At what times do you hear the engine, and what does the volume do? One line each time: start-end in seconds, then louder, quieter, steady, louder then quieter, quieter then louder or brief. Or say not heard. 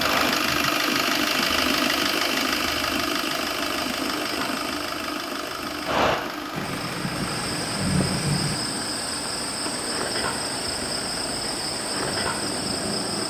0.0-13.2 quieter.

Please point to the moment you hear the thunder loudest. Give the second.
8 s.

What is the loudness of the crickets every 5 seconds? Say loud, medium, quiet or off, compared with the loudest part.
medium, loud, loud.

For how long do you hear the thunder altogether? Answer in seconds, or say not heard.
2 s.